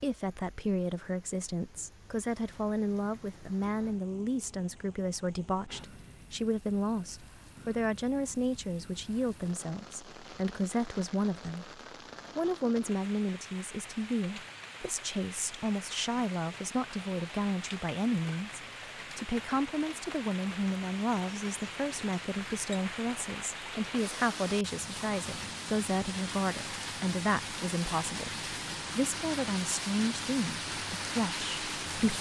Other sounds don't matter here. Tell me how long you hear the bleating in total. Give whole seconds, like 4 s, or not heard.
not heard.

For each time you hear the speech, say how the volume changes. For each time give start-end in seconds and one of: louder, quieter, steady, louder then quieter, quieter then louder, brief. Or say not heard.
0.0-32.1 steady.